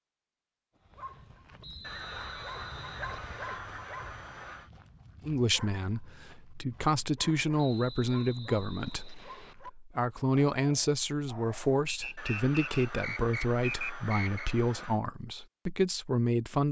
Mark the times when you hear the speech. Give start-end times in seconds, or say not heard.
5.2-16.6.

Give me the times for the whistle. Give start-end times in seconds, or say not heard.
1.6-3.6, 7.5-9.6, 11.8-14.5.